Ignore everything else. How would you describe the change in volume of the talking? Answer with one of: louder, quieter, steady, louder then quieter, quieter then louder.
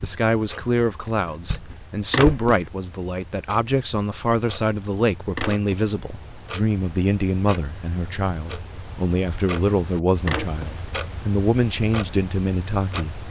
steady.